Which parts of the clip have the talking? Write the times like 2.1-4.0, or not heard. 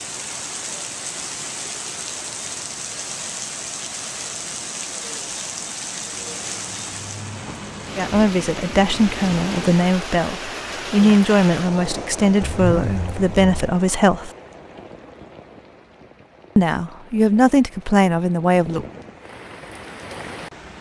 8.0-14.3, 16.6-18.9.